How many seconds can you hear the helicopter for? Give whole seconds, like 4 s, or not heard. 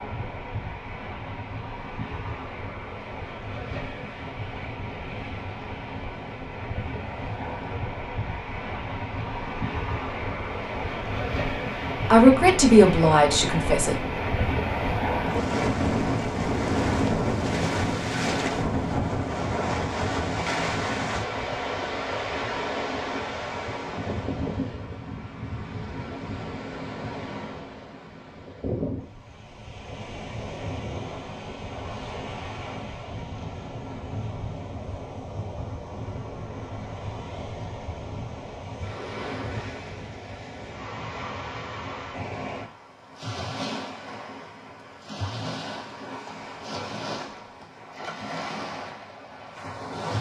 not heard.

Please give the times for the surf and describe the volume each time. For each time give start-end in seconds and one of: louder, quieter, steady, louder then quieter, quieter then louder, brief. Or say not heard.
0.0-50.1 louder then quieter.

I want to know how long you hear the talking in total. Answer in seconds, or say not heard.
2 s.